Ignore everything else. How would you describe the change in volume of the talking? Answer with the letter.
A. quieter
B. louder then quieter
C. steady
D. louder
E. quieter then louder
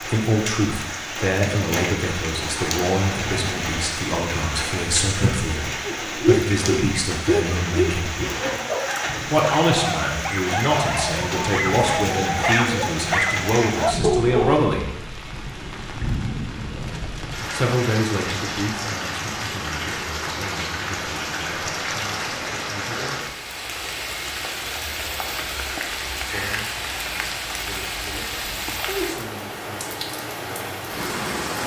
A.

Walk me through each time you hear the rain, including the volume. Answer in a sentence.
You can hear the rain from 0.0 to 31.6 s, at a steady volume.